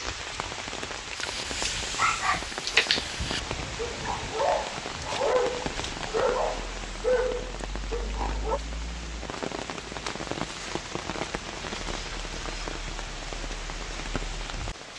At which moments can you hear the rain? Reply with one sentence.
You can hear the rain from 0.0 to 14.9 s.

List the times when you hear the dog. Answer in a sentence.
The dog can be heard from 1.1 to 8.6 s.